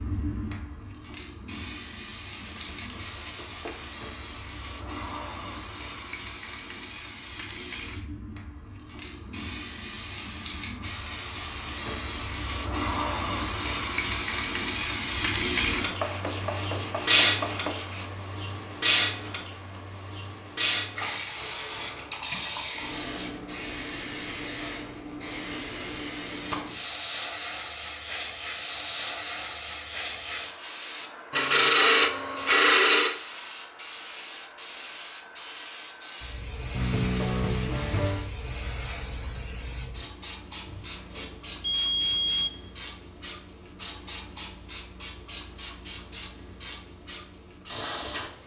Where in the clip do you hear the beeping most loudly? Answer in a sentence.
The volume of the beeping peaks at 42 seconds.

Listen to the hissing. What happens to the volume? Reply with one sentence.
The volume of the hissing goes up, then down.